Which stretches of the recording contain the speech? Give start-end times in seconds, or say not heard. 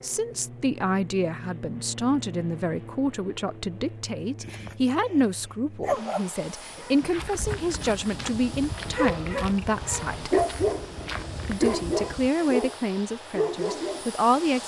0.0-10.3, 11.4-14.6.